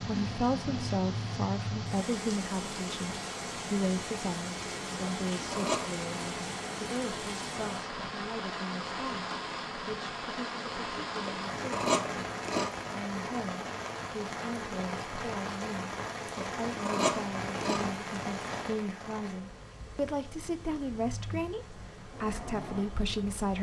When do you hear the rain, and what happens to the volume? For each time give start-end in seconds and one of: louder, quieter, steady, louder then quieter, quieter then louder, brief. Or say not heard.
0.0-23.5 quieter.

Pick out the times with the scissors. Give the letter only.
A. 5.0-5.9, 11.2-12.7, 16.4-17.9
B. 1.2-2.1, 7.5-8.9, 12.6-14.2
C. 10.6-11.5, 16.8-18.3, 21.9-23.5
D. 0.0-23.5
A.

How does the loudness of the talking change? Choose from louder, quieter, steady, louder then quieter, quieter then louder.
quieter then louder.